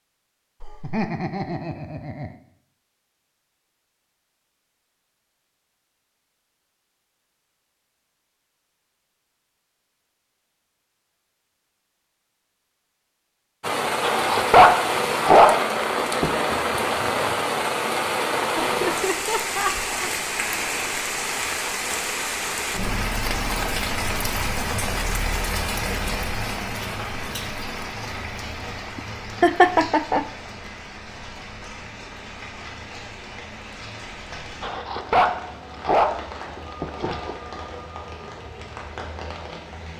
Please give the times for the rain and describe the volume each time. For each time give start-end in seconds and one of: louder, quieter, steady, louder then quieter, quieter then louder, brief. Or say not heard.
13.6-39.9 quieter.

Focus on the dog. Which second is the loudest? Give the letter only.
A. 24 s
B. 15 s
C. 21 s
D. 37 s
B.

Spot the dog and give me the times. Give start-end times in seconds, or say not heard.
14.0-16.4, 34.6-37.4.